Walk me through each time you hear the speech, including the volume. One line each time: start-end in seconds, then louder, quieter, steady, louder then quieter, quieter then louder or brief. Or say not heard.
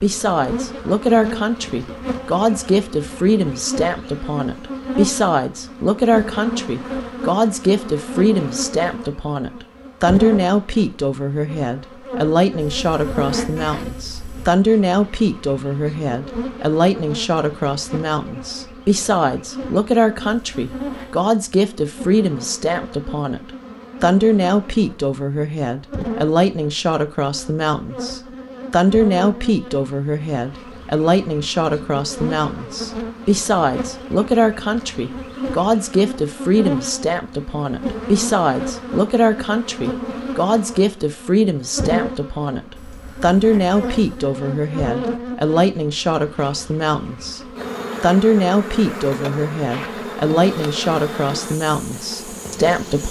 0.0-53.0 steady.